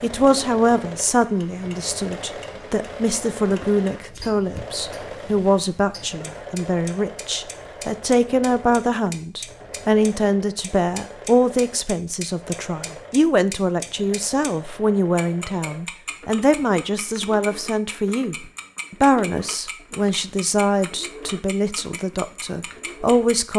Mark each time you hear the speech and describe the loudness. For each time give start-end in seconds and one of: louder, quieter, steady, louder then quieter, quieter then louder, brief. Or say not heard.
0.0-23.5 steady.